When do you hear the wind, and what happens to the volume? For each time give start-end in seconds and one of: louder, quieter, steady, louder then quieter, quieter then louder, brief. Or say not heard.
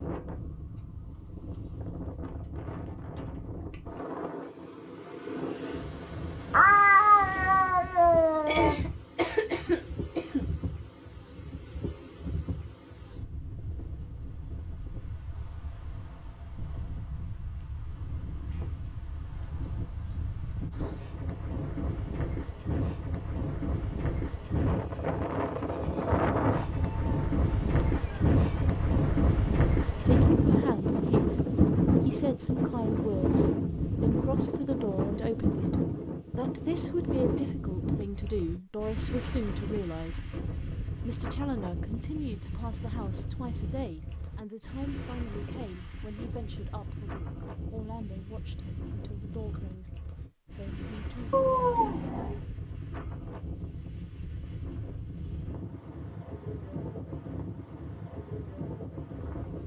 0.0-59.6 louder then quieter.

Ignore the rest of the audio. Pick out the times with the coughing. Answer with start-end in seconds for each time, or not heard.
8.4-10.4.